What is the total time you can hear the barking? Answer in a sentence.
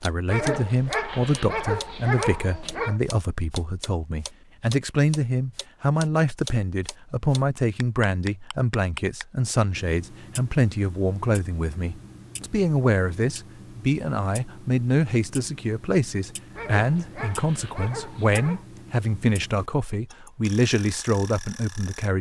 The barking can be heard for 5 seconds in total.